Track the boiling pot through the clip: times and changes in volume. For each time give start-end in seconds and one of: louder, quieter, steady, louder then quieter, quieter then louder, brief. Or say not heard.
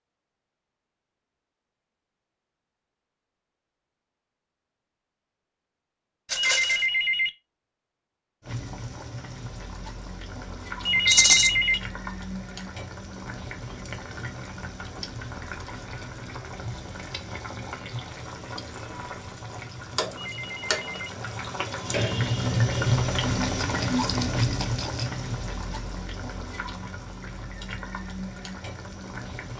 8.4-29.5 louder then quieter.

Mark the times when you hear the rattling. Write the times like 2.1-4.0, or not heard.
6.2-6.9, 11.1-11.5, 23.6-25.1.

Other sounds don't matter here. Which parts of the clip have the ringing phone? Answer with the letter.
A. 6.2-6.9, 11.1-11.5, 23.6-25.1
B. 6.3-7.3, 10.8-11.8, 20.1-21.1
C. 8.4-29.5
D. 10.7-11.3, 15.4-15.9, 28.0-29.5
B.